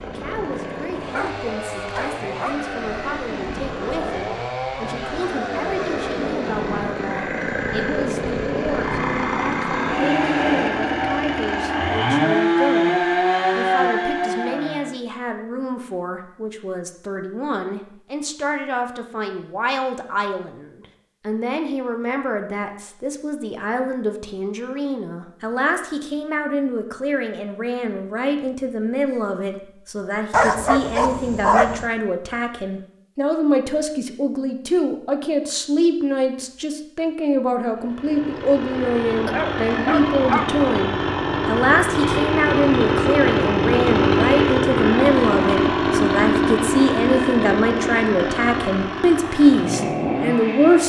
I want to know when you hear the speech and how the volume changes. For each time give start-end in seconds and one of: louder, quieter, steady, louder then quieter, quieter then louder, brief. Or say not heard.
0.0-50.8 louder.